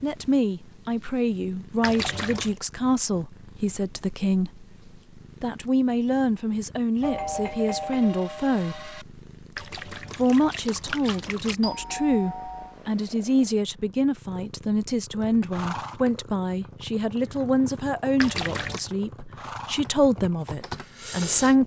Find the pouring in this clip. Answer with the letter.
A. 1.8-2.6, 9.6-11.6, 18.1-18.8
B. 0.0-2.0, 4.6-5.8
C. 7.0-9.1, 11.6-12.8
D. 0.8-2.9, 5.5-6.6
A.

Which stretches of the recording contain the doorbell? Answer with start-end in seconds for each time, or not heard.
7.0-9.1, 11.6-12.8.